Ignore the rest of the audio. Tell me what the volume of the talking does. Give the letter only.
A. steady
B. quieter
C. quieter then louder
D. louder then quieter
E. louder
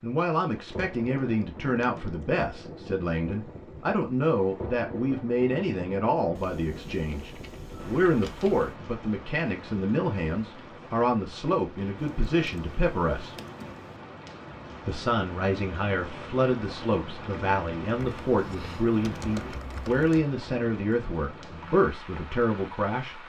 A.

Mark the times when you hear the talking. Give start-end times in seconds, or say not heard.
0.0-13.3, 14.8-23.2.